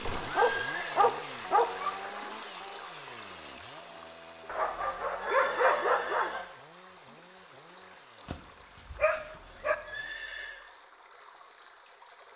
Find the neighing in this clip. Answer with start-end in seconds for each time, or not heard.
0.0-0.9, 4.5-6.5, 9.2-10.7.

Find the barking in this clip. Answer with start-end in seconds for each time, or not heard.
0.1-1.9, 4.5-6.5, 8.2-9.8.